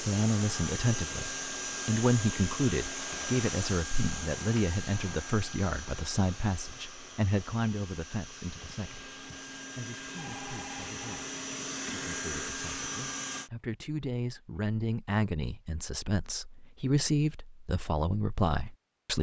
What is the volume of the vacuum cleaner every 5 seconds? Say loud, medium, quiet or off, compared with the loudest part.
loud, medium, loud, off.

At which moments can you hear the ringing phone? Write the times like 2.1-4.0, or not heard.
10.2-11.2.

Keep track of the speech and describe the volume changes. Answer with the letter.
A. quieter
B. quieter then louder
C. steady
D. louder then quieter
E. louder
B.